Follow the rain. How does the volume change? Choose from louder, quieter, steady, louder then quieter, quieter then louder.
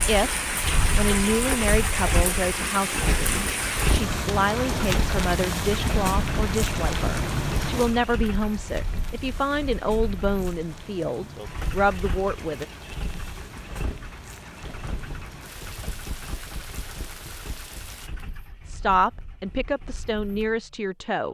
quieter.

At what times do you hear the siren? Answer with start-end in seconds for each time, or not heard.
not heard.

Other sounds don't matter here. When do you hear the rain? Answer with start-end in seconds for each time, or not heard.
0.0-18.1.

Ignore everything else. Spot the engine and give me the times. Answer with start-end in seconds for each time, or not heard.
0.0-21.2.